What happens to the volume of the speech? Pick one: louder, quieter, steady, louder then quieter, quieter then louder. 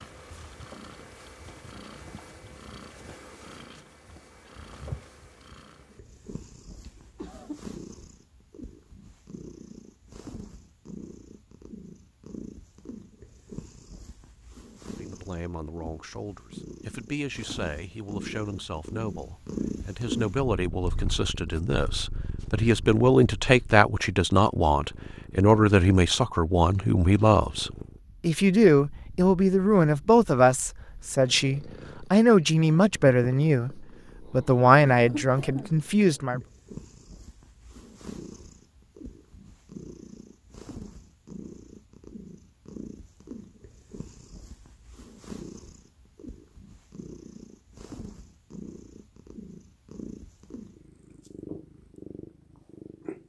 louder.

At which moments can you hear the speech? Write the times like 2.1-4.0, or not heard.
14.9-36.4.